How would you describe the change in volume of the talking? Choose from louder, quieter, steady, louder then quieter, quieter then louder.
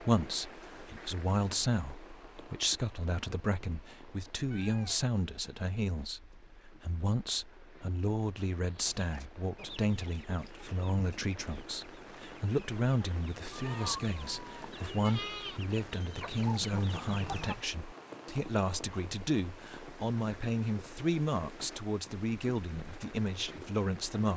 steady.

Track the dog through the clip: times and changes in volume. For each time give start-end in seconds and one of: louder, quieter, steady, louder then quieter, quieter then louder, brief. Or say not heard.
not heard.